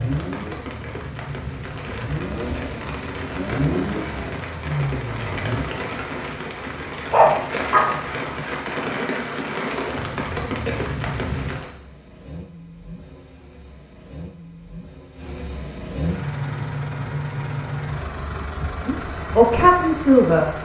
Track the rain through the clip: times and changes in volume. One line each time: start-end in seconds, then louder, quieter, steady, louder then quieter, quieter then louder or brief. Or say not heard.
0.0-11.7 louder.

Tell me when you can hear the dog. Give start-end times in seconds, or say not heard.
7.1-8.6.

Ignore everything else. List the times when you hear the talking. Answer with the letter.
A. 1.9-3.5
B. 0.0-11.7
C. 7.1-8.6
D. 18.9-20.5
D.